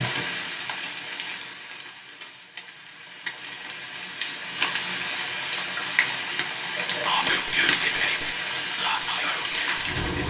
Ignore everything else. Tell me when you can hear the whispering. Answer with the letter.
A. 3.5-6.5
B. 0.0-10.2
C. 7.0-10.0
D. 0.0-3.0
C.